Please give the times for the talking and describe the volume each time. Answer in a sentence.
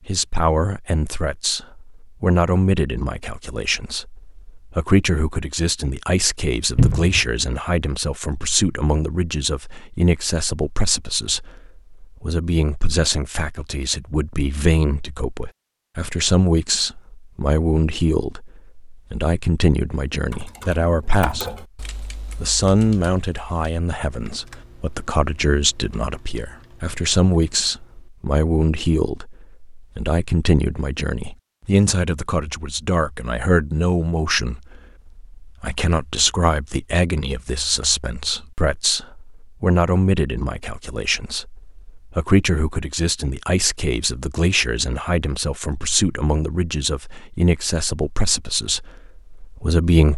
You can hear the talking from 0.1 to 21.6 s, at a steady volume; and from 22.4 to 50.1 s, at a steady volume.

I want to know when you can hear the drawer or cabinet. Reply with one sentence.
You can hear the drawer or cabinet from 6.8 to 7.3 s.